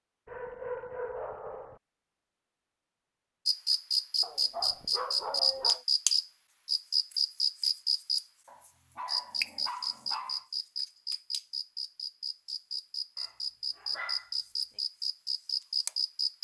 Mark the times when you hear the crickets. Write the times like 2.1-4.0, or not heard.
3.5-16.3.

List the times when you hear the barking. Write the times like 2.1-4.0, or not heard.
0.2-1.8, 4.2-5.8, 8.4-10.4, 13.2-14.3.